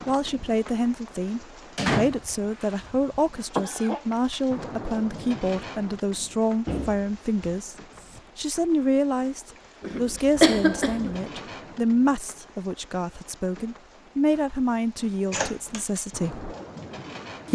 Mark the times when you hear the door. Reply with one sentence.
The door can be heard from 1.8 to 2.6 s, from 6.7 to 7.7 s and from 15.3 to 15.8 s.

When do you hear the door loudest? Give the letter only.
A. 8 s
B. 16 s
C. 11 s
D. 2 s
D.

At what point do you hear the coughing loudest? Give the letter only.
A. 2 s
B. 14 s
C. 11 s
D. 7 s
C.